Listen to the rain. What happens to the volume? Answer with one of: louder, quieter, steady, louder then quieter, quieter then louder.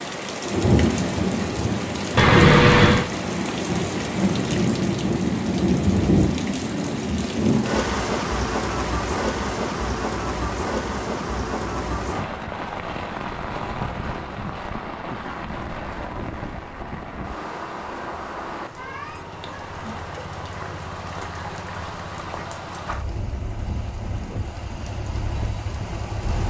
quieter.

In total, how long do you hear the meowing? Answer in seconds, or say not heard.
2 s.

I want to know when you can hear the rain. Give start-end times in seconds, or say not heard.
0.0-26.4.